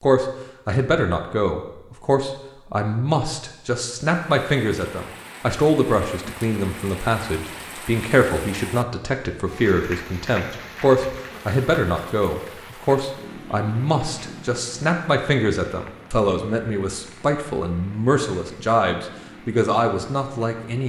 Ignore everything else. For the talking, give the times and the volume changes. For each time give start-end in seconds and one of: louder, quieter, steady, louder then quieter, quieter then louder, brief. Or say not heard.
0.0-20.8 steady.